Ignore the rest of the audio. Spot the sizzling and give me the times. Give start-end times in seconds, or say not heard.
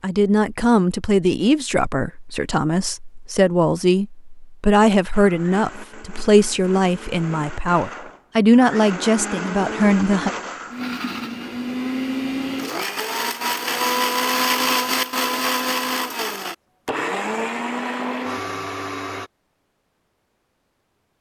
not heard.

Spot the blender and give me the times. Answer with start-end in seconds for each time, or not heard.
5.1-19.3.